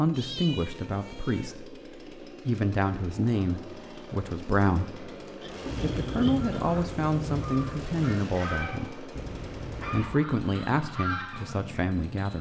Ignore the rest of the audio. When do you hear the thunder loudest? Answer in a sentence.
The loudest moment of the thunder is at 6 seconds.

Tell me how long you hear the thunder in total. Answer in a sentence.
You can hear the thunder for 2 seconds altogether.